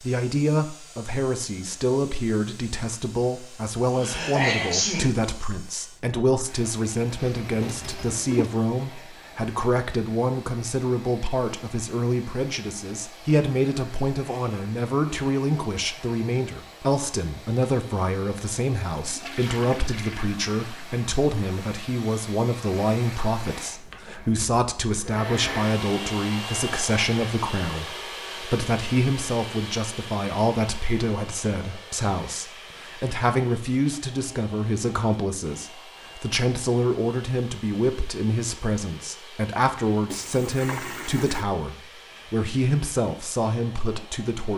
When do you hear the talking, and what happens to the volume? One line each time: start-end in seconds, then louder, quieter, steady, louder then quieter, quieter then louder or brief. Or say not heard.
0.0-44.5 steady.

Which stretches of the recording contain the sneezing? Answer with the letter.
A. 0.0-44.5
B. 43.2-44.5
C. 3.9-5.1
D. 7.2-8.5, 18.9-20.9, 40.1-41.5
C.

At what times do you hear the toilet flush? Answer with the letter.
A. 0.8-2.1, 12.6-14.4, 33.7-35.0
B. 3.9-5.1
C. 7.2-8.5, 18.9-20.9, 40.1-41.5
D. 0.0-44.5
C.